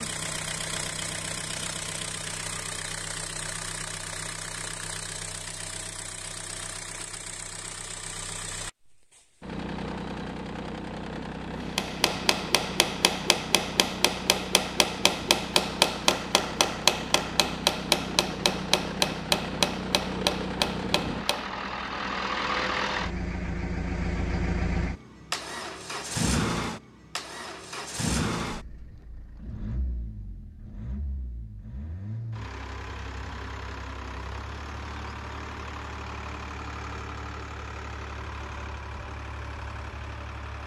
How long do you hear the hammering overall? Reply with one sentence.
The hammering can be heard for 10 seconds in total.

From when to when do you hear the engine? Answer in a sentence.
You can hear the engine from 0.0 to 40.6 s.